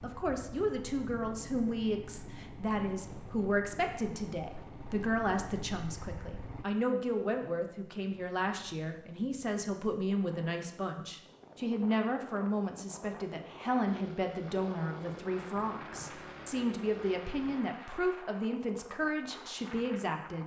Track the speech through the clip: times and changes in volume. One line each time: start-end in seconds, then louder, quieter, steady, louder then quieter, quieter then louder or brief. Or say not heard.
0.0-20.4 steady.